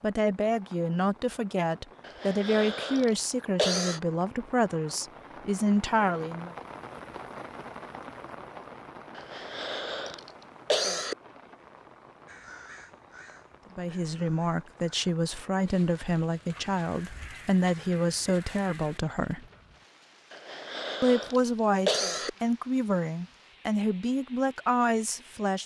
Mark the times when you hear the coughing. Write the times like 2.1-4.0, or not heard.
2.0-4.0, 9.2-11.2, 20.3-22.3.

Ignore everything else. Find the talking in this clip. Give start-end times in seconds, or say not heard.
0.0-6.5, 13.8-19.4, 21.0-25.6.